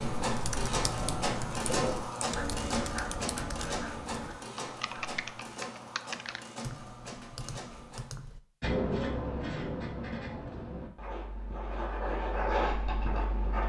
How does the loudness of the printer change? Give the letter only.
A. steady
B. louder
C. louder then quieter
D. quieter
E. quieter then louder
D.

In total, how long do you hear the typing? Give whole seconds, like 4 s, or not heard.
8 s.